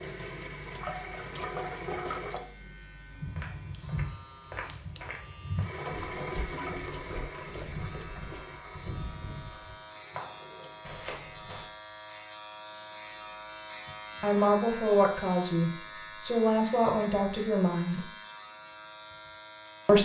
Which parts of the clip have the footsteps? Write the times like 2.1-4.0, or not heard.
3.1-11.7.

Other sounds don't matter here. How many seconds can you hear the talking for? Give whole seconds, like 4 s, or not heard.
4 s.